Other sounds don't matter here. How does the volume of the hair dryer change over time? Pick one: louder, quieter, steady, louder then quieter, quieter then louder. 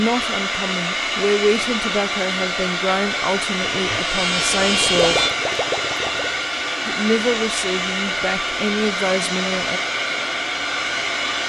steady.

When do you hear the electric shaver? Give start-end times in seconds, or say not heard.
3.7-5.3.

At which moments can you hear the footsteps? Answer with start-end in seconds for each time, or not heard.
not heard.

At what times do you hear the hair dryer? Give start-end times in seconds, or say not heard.
0.0-11.4.